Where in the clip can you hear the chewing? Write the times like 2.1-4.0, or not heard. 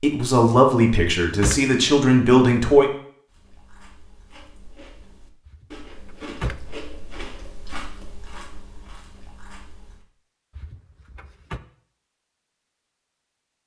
3.2-10.1.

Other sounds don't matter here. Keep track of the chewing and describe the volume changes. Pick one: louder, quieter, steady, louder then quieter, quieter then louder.
louder then quieter.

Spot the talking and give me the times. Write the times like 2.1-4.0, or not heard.
0.0-2.9.